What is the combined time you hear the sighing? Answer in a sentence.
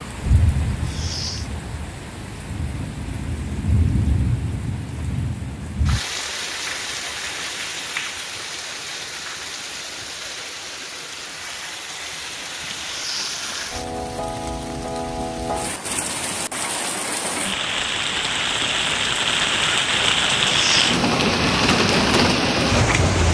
You can hear the sighing for 2 seconds altogether.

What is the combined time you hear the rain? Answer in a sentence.
The rain can be heard for 23 seconds in total.